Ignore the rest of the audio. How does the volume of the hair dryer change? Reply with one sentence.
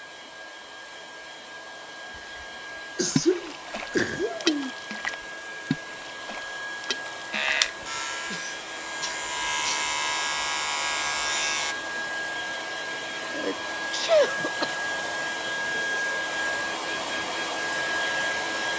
The volume of the hair dryer goes up.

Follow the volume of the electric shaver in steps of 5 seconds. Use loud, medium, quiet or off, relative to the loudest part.
off, loud, loud, off.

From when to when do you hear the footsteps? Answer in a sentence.
The footsteps can't be heard in this clip.